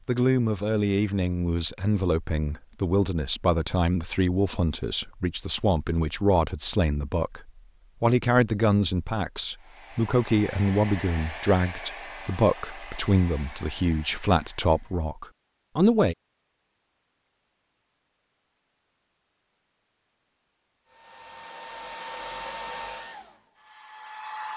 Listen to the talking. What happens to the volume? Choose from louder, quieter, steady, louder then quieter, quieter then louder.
steady.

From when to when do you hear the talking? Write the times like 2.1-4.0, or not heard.
0.1-16.1.